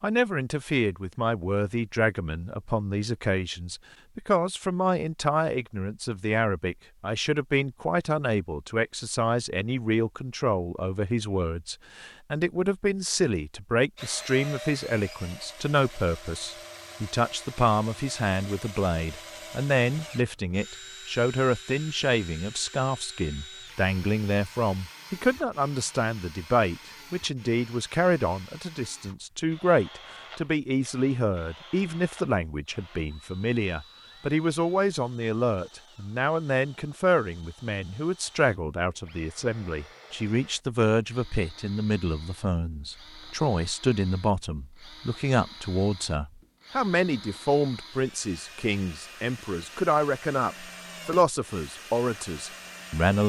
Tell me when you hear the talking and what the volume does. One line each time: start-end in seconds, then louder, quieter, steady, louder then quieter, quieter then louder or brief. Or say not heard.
0.0-53.2 steady.